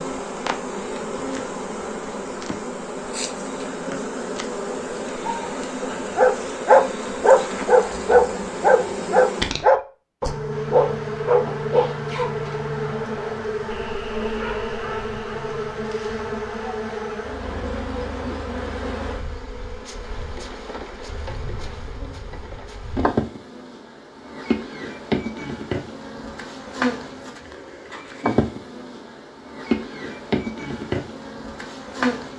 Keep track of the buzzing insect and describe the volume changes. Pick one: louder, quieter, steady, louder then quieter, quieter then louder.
steady.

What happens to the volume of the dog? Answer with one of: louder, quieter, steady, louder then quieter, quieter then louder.
quieter.